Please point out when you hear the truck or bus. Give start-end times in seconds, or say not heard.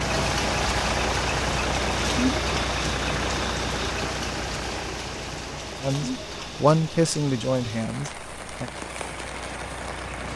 0.0-10.3.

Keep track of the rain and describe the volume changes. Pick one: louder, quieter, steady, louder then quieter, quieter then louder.
quieter.